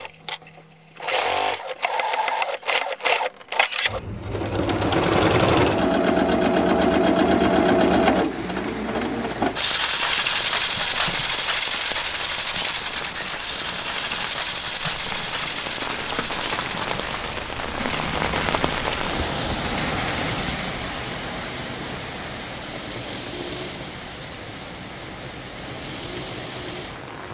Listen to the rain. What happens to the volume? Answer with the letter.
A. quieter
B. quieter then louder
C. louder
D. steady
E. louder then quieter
E.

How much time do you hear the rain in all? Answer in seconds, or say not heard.
19 s.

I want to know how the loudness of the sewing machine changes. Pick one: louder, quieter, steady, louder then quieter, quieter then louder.
quieter.